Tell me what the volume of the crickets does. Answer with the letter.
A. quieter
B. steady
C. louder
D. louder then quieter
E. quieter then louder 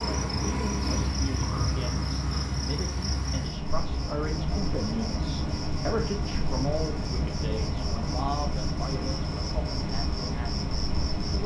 B.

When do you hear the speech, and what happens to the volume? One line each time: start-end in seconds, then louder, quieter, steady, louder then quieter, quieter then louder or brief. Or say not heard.
0.2-11.4 louder then quieter.